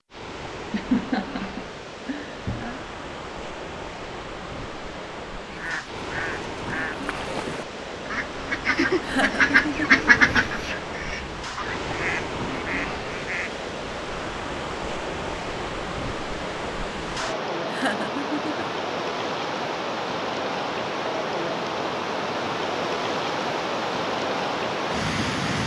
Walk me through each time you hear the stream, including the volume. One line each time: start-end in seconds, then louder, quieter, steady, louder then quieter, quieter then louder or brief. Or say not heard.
0.1-25.6 louder.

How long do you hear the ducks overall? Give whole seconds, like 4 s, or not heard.
8 s.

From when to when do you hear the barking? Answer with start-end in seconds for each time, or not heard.
not heard.